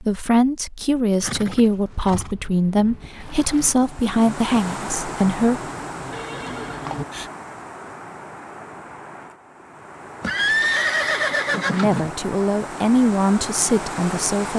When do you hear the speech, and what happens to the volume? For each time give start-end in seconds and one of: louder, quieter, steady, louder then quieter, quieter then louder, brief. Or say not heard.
0.0-5.7 steady
11.7-14.5 brief.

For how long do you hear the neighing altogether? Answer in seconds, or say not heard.
4 s.